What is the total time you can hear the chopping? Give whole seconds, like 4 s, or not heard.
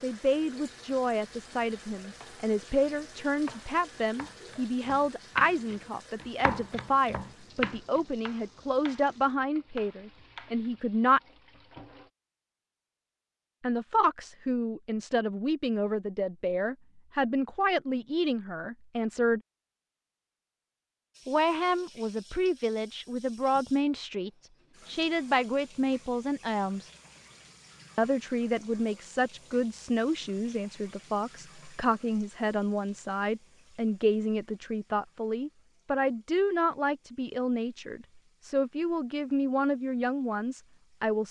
8 s.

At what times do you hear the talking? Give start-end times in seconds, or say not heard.
0.0-11.2, 13.6-19.4, 21.2-26.9, 27.9-41.2.